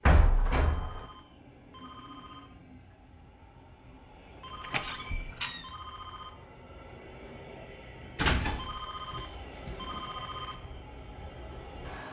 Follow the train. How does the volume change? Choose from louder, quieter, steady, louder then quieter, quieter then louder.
louder.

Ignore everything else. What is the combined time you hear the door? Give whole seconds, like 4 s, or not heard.
4 s.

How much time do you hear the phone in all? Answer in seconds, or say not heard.
6 s.